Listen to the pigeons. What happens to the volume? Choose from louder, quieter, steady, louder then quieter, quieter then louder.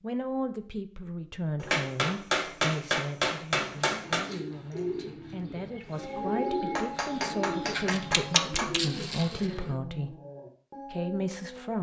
quieter then louder.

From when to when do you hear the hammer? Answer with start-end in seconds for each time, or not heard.
1.6-4.3, 6.8-8.7.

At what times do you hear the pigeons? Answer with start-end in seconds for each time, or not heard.
3.5-9.8.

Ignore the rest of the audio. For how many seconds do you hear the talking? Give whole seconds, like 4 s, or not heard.
11 s.